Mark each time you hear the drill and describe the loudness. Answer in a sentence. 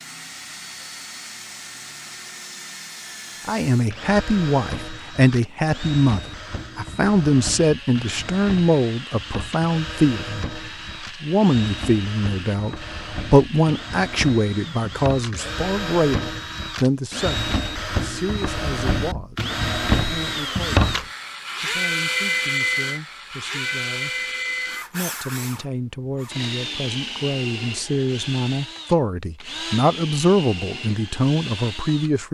You can hear the drill from 0.0 to 32.1 s, getting louder then quieter.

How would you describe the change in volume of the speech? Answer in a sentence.
The loudness of the speech goes down, then up.